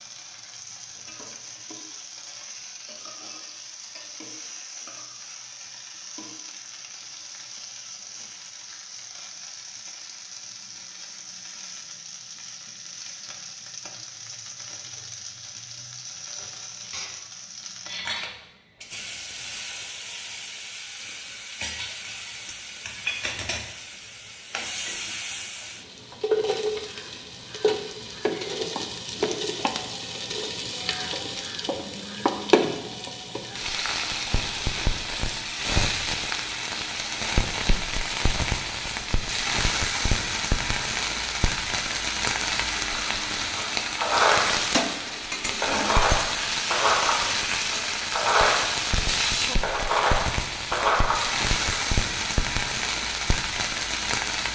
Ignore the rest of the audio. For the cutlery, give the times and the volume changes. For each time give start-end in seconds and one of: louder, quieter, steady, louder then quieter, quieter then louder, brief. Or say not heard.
43.0-51.8 steady.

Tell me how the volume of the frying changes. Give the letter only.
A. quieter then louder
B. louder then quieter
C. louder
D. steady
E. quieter
C.